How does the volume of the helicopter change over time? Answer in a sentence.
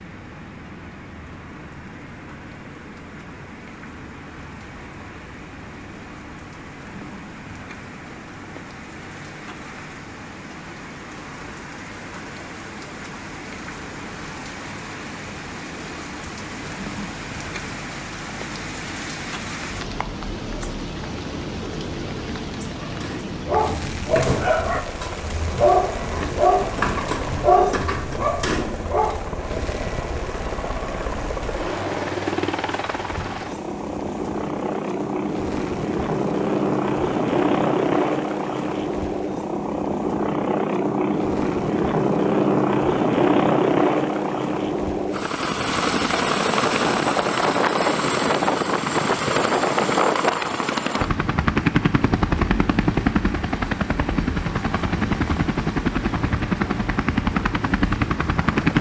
The loudness of the helicopter goes up.